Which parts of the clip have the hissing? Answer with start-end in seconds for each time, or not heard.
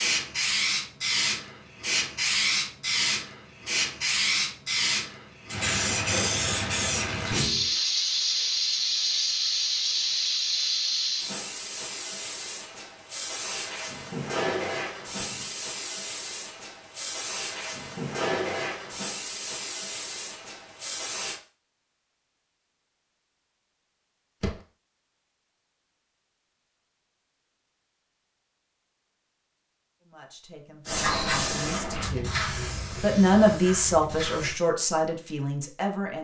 0.0-21.4, 30.9-34.5.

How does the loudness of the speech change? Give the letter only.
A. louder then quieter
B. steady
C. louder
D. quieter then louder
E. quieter
A.